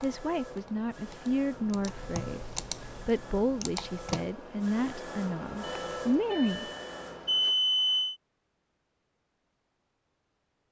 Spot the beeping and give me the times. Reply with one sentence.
You can hear the beeping from 5.6 to 8.2 s.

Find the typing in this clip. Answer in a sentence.
The typing can be heard from 0.0 to 4.2 s.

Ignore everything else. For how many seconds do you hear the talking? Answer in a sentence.
The talking can be heard for 7 seconds in total.